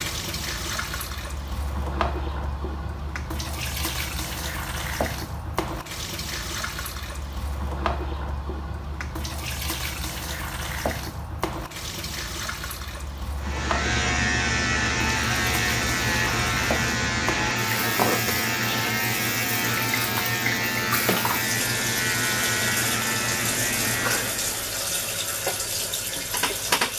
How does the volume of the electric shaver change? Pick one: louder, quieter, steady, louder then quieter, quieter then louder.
steady.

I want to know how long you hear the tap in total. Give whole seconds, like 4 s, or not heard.
27 s.